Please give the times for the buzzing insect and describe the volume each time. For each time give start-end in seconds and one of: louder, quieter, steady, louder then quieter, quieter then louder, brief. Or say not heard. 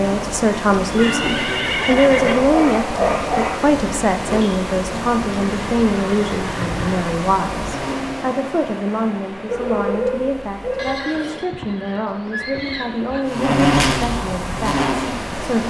0.0-8.2 steady
13.2-15.6 brief.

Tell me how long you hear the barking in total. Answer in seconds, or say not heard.
3 s.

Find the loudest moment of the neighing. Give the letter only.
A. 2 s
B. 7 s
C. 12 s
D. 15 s
A.